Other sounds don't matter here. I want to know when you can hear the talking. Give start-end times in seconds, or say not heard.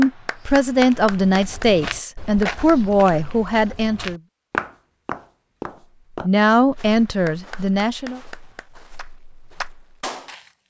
0.0-4.2, 6.2-8.2.